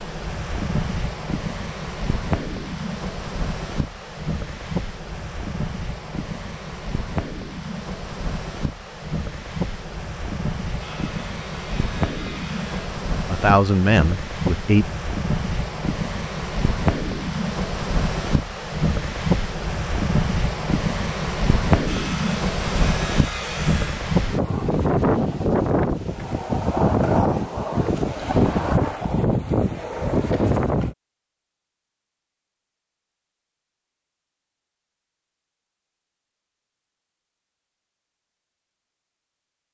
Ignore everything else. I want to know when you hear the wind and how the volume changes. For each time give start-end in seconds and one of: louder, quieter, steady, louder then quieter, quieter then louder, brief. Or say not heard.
0.0-30.9 louder.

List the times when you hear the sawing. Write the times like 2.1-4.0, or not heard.
10.8-12.9, 21.9-24.1.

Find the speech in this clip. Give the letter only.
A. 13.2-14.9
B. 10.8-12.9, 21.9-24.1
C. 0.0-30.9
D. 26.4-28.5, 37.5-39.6
A.